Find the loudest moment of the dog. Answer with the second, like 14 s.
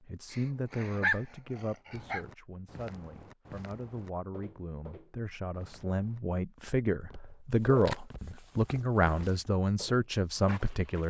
1 s.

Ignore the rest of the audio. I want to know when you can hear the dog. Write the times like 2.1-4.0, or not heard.
0.3-2.2, 7.2-8.0.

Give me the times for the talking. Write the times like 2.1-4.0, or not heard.
0.1-11.0.